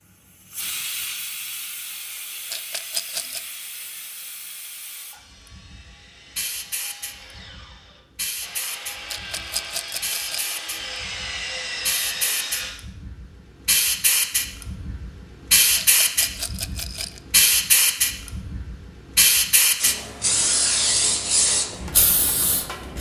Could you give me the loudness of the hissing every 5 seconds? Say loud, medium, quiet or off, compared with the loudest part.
quiet, quiet, medium, loud, loud.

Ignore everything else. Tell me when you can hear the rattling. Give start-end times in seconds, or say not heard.
2.5-3.4, 9.1-10.6, 15.8-17.2.